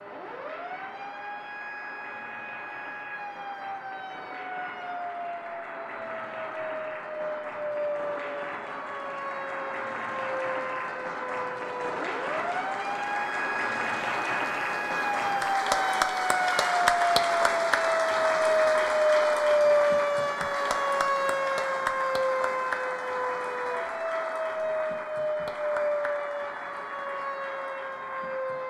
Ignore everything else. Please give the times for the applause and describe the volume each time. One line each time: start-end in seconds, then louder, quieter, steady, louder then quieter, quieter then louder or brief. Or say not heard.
0.0-28.6 louder then quieter.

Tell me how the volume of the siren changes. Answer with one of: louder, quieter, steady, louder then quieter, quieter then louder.
louder then quieter.